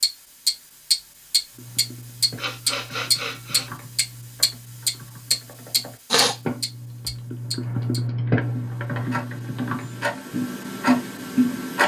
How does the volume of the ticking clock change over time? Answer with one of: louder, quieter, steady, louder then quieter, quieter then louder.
quieter then louder.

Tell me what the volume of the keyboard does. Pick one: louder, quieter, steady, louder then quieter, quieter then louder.
louder.